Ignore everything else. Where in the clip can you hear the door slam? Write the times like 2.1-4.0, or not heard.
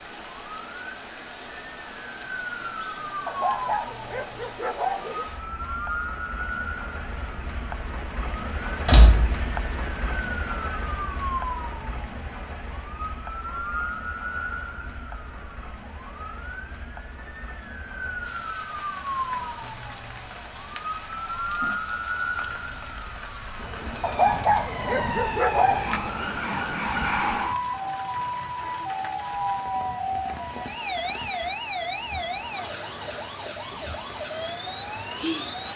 8.8-9.3.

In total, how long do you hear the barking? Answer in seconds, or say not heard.
4 s.